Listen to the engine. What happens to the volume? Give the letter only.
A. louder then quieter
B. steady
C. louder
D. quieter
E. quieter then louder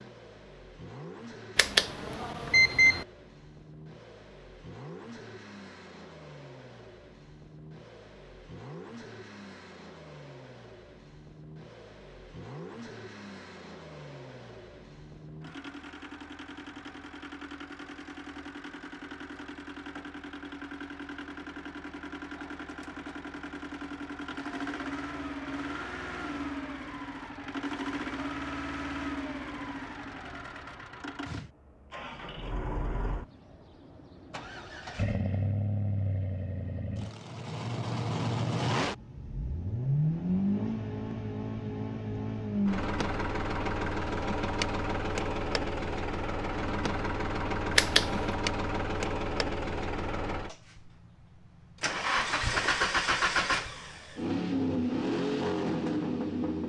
C.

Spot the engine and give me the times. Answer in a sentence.
You can hear the engine from 0.0 to 56.6 s.